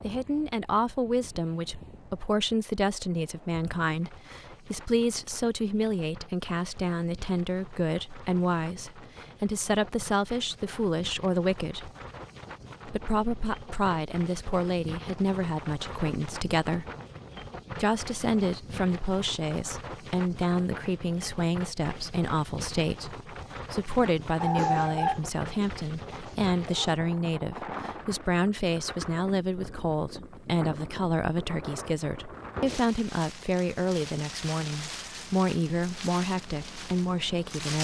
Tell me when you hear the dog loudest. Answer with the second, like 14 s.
25 s.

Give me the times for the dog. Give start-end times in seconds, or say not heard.
24.4-26.9.